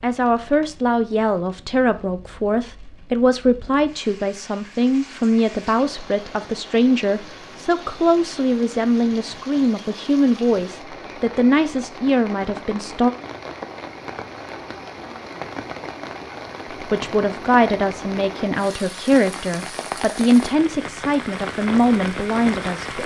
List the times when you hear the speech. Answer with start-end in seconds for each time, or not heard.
0.0-13.1, 16.9-23.0.